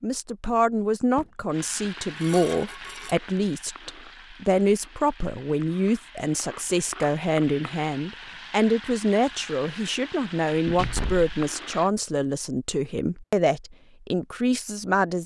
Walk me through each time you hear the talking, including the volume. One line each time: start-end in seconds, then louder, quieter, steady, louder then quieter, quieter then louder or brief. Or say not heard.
0.0-15.2 steady.